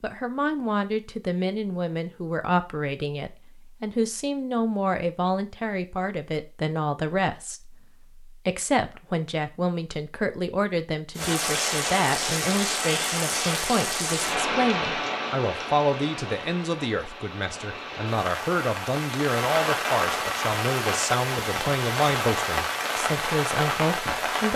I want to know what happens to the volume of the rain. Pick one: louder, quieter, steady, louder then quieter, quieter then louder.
quieter then louder.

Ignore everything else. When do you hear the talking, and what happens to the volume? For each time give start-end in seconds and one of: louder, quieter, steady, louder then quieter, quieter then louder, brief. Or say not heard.
0.0-24.5 steady.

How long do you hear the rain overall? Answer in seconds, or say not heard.
13 s.